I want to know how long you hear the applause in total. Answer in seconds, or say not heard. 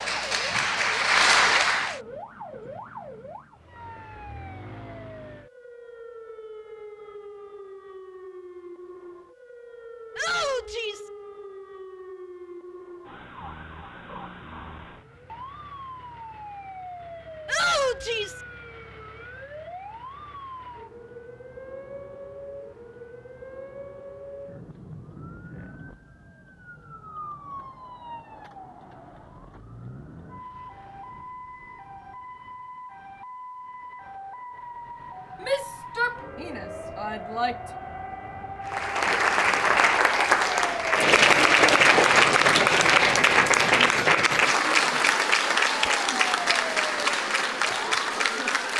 12 s.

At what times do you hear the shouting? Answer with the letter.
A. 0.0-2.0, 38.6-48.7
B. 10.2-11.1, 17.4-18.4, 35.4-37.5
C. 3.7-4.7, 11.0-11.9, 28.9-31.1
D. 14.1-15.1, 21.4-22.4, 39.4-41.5
B.